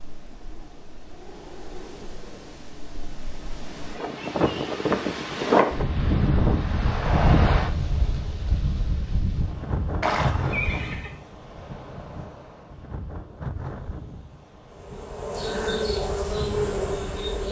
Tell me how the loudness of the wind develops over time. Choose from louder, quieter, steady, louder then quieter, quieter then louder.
louder then quieter.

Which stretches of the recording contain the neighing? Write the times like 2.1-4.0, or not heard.
10.0-11.2.